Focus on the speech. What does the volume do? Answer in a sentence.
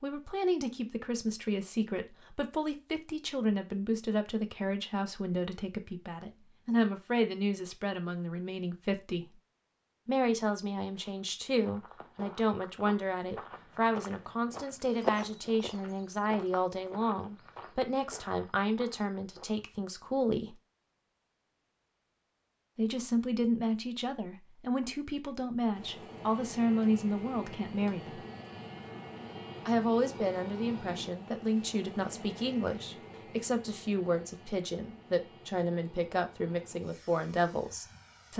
The loudness of the speech stays about the same.